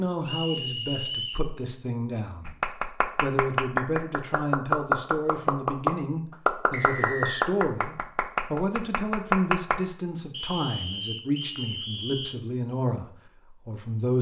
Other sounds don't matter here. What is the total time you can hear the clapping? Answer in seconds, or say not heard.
7 s.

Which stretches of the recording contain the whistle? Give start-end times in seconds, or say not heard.
0.2-1.4, 6.7-7.5, 10.3-12.4.